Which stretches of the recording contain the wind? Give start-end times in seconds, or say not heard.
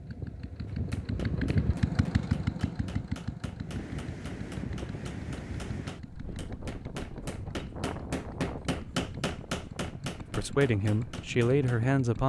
3.5-12.2.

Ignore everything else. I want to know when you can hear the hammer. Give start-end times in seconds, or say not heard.
0.7-11.8.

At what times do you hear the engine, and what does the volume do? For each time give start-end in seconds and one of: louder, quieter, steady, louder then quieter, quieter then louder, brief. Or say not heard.
0.0-12.2 quieter.